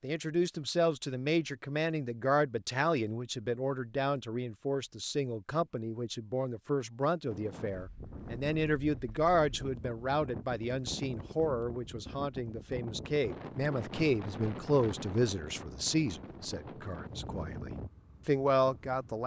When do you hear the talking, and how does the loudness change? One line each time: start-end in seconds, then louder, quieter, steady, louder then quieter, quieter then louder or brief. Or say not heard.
0.0-19.2 steady.